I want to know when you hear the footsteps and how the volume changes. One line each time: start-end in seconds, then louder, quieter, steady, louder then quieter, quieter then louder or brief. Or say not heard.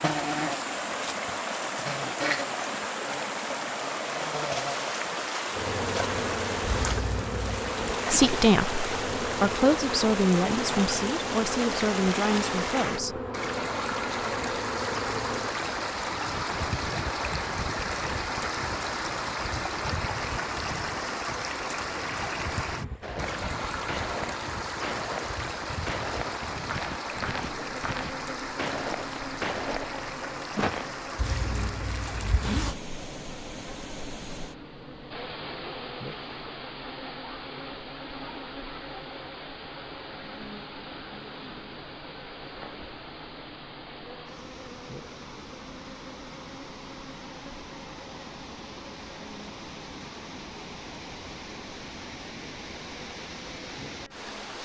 23.0-30.9 steady.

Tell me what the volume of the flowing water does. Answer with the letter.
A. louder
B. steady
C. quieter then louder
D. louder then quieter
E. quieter
E.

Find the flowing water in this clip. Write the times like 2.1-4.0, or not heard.
0.0-54.6.